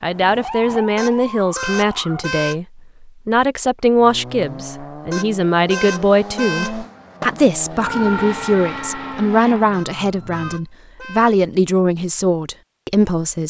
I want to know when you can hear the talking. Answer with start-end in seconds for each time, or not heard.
0.0-13.4.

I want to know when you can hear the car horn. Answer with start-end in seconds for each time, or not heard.
0.9-2.6, 5.1-6.8, 9.7-11.3.